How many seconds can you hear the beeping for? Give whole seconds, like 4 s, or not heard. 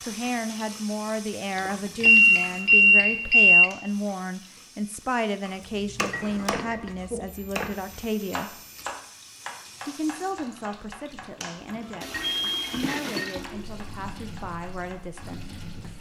4 s.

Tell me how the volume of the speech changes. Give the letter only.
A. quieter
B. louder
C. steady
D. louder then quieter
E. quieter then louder
A.